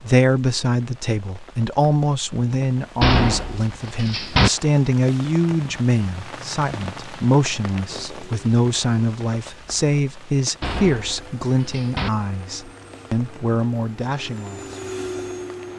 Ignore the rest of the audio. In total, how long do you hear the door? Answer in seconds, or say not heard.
3 s.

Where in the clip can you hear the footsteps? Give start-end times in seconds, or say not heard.
not heard.